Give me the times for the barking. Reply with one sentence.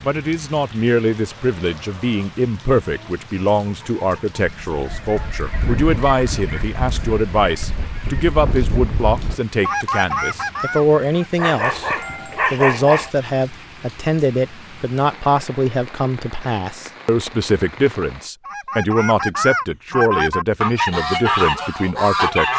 The barking can be heard from 11.3 to 13.1 s.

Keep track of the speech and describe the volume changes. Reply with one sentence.
The loudness of the speech stays about the same.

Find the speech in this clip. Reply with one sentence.
The speech can be heard from 0.0 to 11.9 s and from 12.5 to 22.5 s.